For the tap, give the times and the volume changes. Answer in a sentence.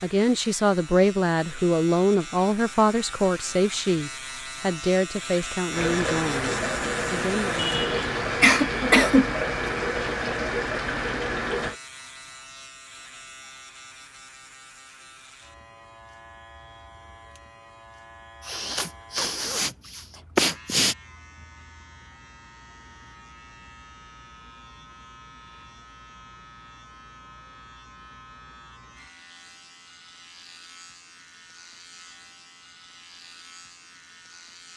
The tap can be heard from 5.7 to 11.8 s, at a steady volume.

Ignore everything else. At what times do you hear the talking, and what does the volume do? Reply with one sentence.
You can hear the talking from 0.0 to 7.8 s, getting quieter.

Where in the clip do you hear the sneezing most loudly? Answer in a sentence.
The volume of the sneezing peaks at 9 seconds.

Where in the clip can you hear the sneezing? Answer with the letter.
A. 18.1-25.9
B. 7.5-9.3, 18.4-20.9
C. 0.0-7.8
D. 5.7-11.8
B.